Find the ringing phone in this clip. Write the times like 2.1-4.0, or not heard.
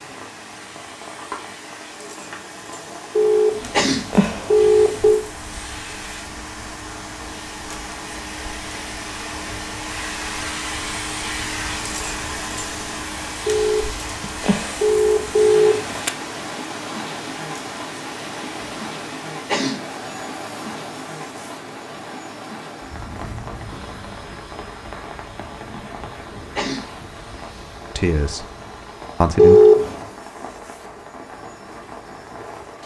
3.1-5.2, 13.4-16.1, 29.4-30.0.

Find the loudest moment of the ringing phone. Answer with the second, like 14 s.
30 s.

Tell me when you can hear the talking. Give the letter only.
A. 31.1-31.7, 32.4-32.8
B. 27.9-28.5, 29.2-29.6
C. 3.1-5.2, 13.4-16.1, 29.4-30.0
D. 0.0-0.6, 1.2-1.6
B.